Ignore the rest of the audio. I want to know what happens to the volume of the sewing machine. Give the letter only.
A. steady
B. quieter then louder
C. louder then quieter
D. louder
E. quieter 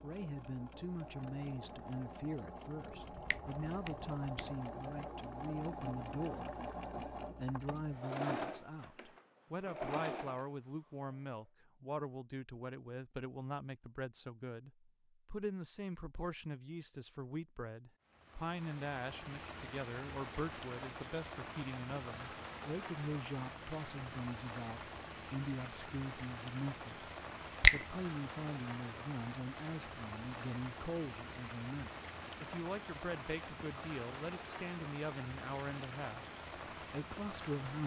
D.